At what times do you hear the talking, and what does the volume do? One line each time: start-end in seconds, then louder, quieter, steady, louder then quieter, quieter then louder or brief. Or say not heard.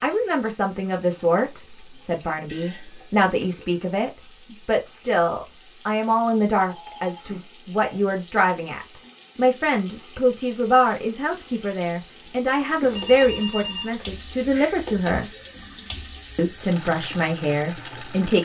0.0-15.3 steady
16.4-18.3 brief.